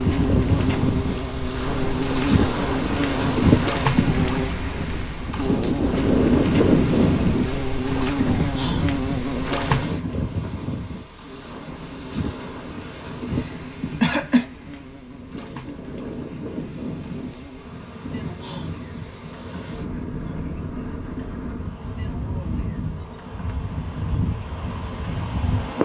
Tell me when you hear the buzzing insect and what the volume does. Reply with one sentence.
The buzzing insect can be heard from 0.0 to 25.8 s, getting quieter.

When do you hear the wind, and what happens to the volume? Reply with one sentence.
You can hear the wind from 0.0 to 25.8 s, getting quieter.